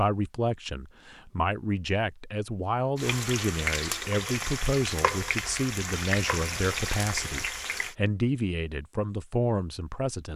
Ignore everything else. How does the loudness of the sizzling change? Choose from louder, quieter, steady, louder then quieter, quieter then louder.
steady.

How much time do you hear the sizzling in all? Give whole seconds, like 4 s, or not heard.
5 s.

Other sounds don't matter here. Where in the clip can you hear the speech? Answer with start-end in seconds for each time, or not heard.
0.0-10.3.